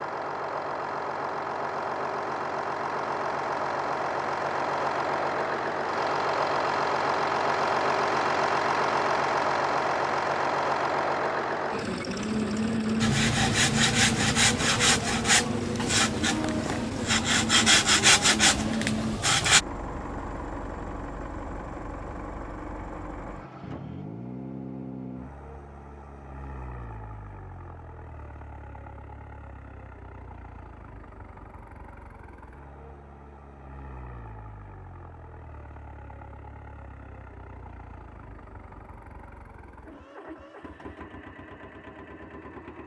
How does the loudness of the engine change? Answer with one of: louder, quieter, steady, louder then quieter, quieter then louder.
quieter.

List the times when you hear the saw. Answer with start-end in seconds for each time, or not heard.
13.0-19.6.